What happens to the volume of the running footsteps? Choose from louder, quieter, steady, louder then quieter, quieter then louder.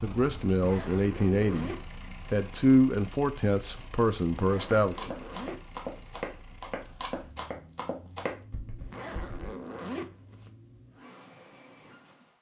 quieter.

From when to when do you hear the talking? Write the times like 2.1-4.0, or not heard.
0.0-5.2.